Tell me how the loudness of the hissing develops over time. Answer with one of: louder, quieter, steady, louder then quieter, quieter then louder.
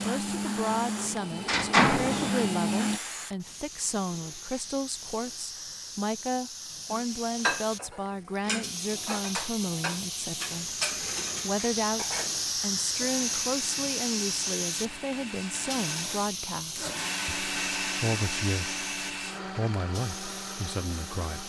louder then quieter.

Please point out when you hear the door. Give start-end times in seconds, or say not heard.
0.9-2.3.